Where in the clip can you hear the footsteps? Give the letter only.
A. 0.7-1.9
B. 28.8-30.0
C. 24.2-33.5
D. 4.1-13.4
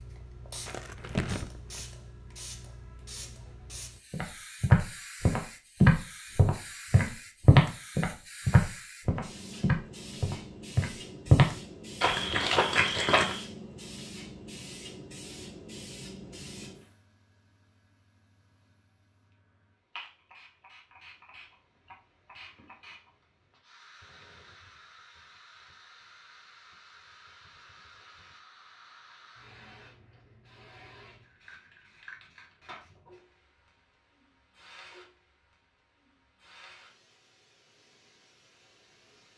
D.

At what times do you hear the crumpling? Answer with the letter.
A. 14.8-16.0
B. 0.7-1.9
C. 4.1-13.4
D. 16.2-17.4
B.